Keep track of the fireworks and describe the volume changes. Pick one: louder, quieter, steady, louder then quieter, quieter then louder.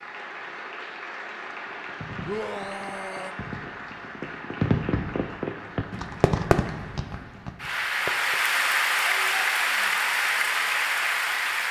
louder then quieter.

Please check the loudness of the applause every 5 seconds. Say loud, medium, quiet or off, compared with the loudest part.
quiet, loud, loud.